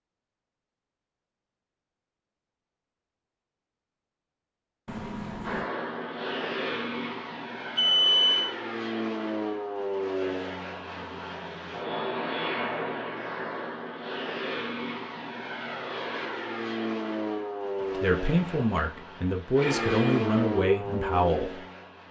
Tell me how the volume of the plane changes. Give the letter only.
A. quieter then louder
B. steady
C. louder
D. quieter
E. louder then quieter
B.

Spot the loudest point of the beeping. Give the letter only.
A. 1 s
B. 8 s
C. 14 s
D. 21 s
B.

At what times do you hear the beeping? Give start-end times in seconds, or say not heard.
4.8-5.7, 7.8-8.6, 19.6-20.2.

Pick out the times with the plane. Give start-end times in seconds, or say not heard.
5.4-22.0.